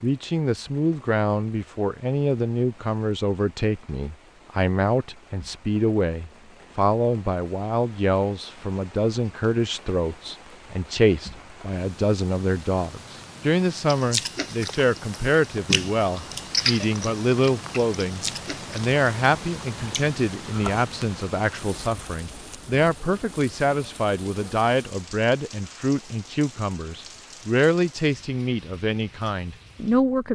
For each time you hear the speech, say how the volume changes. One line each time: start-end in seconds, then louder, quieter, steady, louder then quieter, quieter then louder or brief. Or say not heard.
0.0-30.3 steady.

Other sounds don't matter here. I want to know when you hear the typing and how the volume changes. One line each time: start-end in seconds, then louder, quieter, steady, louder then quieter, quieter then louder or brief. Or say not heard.
not heard.